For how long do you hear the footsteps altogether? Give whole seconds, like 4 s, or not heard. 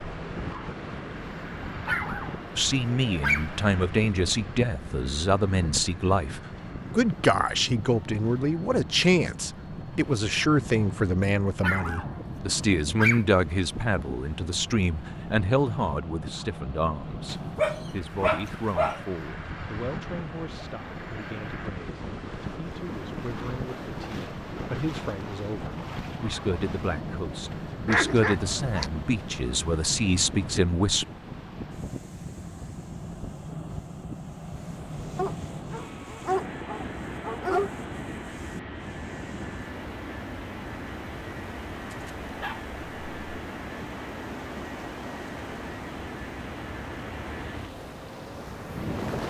not heard.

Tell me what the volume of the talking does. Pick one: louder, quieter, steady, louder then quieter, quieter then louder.
quieter then louder.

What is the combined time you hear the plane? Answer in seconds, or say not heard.
49 s.